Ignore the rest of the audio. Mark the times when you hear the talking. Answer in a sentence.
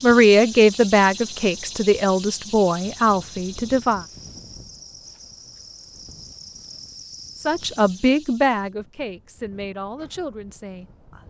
You can hear the talking from 0.0 to 4.0 s and from 7.5 to 11.2 s.